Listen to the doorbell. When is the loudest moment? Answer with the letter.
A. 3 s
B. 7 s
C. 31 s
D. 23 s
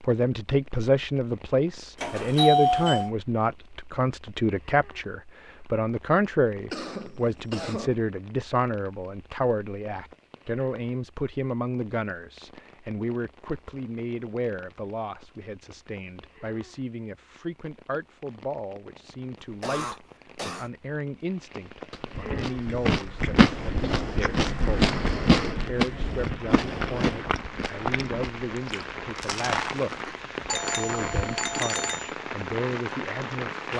A.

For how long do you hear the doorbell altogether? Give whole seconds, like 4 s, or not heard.
3 s.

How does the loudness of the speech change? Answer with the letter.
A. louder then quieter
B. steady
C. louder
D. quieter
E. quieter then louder
D.